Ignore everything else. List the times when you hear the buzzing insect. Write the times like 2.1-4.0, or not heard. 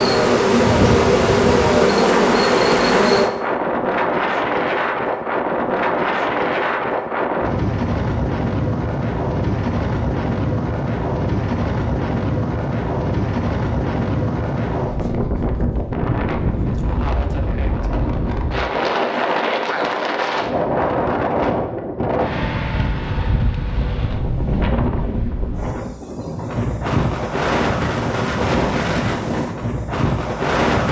0.0-3.3.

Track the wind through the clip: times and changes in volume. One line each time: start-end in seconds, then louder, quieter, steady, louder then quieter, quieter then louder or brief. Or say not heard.
0.0-30.8 steady.